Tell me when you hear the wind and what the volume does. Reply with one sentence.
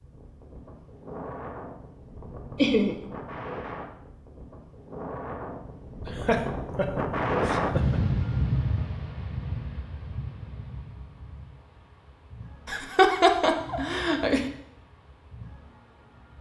The wind can be heard from 0.0 to 16.3 s, getting louder then quieter.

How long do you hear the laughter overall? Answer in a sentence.
You can hear the laughter for 4 seconds altogether.